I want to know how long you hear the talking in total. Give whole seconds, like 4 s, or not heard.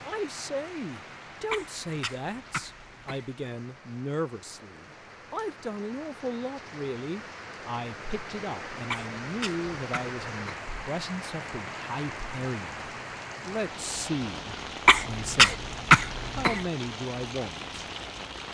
18 s.